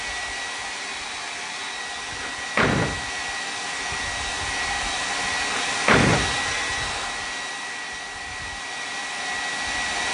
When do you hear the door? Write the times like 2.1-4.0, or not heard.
2.1-3.0, 5.4-7.2.